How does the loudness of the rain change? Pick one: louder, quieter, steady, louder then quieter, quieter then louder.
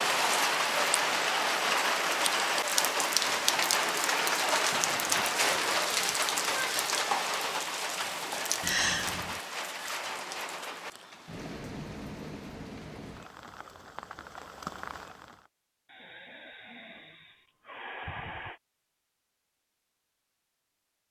quieter.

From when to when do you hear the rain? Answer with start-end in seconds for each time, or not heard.
0.0-15.5.